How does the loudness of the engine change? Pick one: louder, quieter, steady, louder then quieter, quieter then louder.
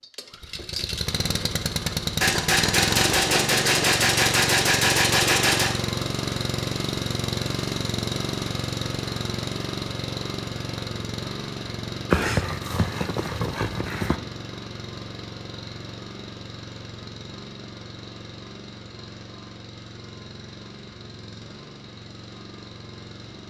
quieter.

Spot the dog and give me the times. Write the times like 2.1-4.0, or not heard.
12.1-14.2.